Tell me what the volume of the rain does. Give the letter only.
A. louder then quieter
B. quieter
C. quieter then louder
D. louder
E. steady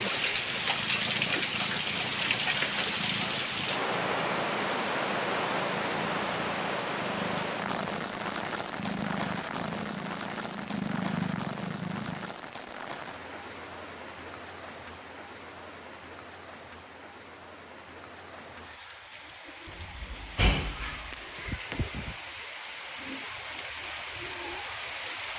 C.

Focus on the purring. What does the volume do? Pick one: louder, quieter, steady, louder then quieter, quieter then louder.
louder.